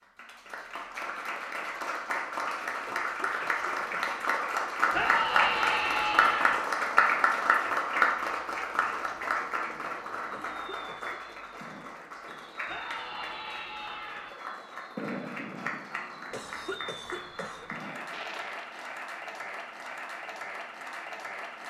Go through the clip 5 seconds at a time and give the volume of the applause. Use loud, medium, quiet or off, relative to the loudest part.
medium, loud, quiet, quiet, quiet.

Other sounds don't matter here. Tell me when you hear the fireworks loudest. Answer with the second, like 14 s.
15 s.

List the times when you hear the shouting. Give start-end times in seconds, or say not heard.
4.9-6.6, 12.7-14.3.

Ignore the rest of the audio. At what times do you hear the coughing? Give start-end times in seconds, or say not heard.
2.9-4.2, 10.3-11.2, 16.3-17.8.